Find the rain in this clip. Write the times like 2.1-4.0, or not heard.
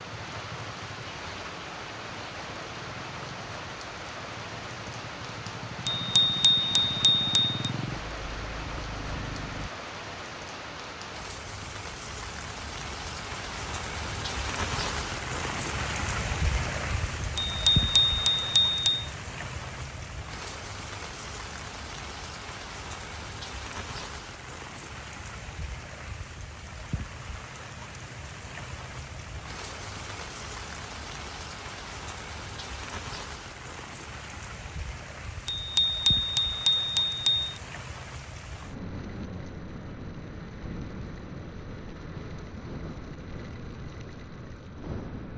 0.0-45.3.